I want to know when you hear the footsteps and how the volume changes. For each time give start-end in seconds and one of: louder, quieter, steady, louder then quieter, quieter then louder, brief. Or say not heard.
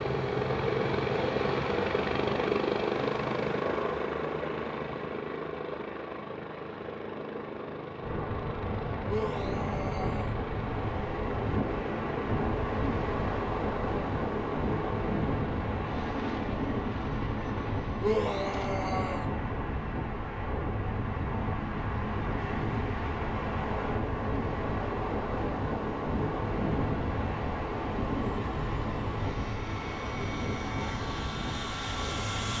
not heard.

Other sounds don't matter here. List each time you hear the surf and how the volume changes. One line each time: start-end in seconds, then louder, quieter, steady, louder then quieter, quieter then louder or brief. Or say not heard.
8.0-32.5 steady.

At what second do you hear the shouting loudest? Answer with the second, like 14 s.
18 s.